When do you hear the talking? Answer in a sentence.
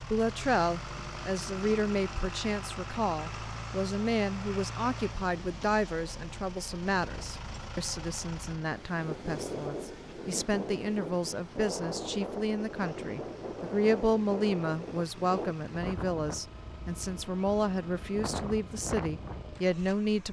You can hear the talking from 0.0 to 20.2 s.